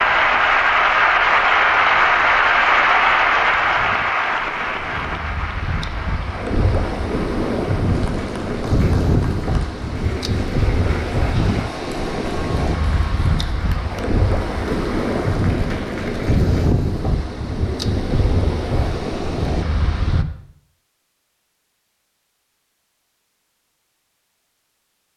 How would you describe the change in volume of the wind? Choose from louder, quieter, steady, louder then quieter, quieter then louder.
louder.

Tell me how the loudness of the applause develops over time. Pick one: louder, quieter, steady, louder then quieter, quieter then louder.
quieter.